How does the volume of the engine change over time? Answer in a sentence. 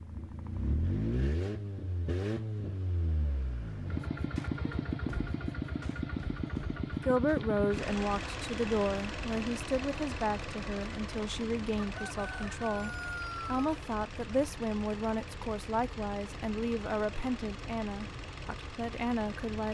The loudness of the engine goes down.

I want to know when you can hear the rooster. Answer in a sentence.
The rooster can be heard from 11.9 to 13.7 s.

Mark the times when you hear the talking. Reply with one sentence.
The talking can be heard from 6.9 to 19.6 s.